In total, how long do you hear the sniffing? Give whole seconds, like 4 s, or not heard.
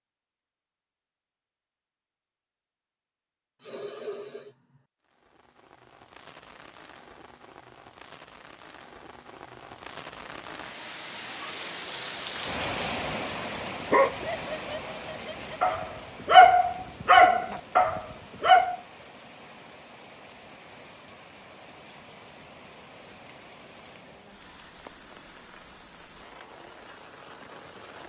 3 s.